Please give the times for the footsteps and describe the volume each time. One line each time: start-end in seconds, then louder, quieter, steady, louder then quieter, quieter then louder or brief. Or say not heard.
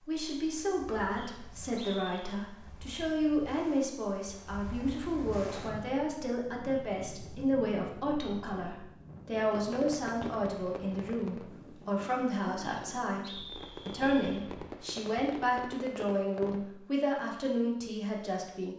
not heard.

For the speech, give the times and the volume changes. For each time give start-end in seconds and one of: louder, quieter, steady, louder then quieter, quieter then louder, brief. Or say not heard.
0.1-18.7 steady.